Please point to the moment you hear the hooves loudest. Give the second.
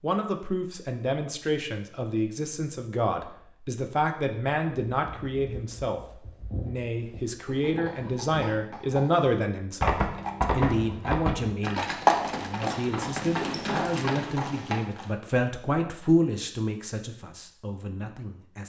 12 s.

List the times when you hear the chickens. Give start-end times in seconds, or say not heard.
not heard.